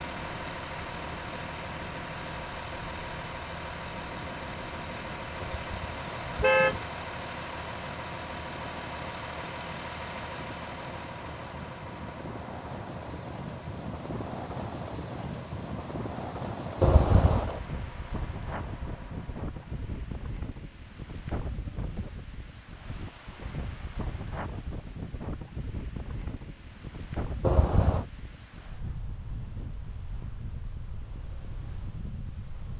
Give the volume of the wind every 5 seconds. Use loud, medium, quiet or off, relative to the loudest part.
medium, medium, loud, loud, loud, loud, medium.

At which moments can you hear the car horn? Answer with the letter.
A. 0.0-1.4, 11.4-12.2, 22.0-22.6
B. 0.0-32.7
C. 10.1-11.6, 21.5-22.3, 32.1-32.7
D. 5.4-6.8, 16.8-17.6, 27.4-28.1
D.